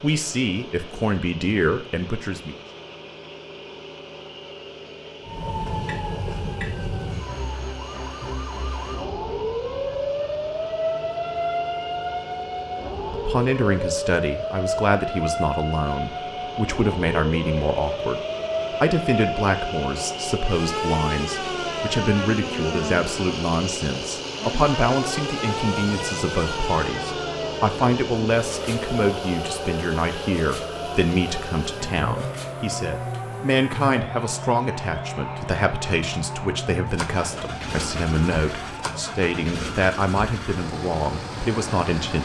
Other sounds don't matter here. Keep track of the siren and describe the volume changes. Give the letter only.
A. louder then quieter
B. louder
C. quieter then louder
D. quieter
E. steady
D.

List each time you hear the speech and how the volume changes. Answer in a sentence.
You can hear the speech briefly from 0.0 to 2.5 s; and from 13.1 to 42.2 s, at a steady volume.